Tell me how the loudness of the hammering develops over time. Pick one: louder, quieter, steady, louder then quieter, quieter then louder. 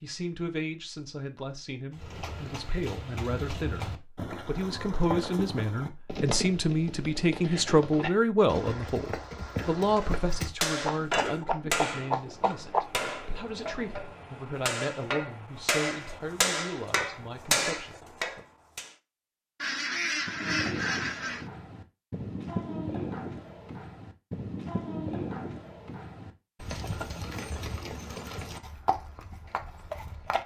quieter then louder.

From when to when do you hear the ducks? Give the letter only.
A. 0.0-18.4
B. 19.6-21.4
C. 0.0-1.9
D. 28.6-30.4
B.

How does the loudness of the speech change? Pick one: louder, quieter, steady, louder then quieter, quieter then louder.
louder then quieter.